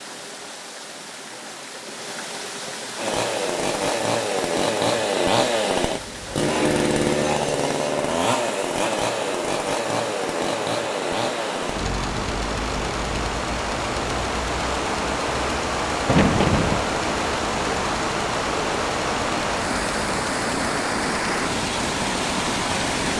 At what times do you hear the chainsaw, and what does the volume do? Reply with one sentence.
The chainsaw can be heard from 3.0 to 23.1 s, getting quieter.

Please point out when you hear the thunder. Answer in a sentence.
You can hear the thunder from 16.1 to 16.9 s.